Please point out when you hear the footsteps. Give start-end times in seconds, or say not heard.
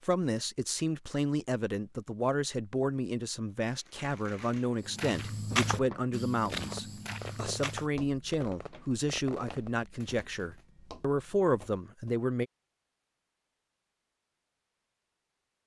4.8-12.2.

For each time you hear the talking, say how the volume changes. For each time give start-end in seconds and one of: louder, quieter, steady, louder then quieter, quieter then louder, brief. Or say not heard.
0.0-12.4 steady.